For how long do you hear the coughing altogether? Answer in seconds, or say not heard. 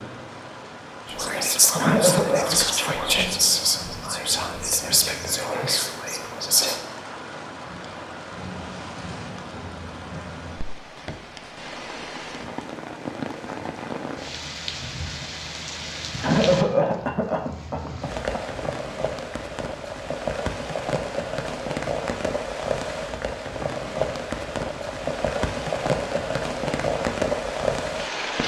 3 s.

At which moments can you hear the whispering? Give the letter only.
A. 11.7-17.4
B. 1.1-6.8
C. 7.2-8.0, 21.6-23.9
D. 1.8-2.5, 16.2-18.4
B.